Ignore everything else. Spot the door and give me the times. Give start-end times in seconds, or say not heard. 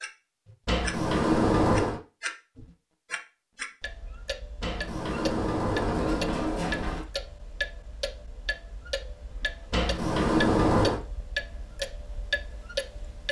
0.7-2.0, 4.6-7.0, 9.7-11.0.